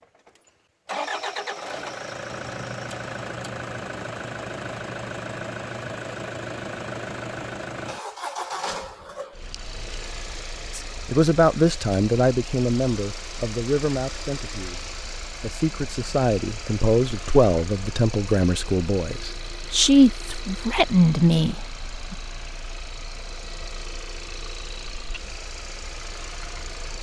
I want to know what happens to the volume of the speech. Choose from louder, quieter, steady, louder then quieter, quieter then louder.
quieter then louder.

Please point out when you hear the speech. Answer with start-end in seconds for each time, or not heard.
10.8-22.1.